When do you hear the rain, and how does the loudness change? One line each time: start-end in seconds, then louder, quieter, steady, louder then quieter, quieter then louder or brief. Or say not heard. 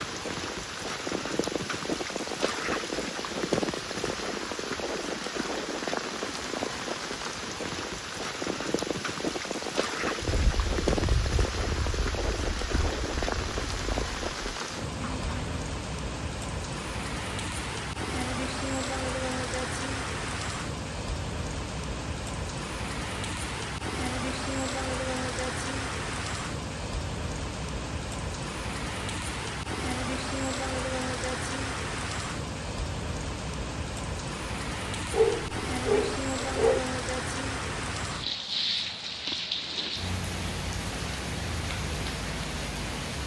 0.0-43.2 steady.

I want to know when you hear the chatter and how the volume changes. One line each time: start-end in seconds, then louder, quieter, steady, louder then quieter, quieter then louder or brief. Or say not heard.
not heard.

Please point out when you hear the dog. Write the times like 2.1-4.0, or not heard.
35.1-36.8.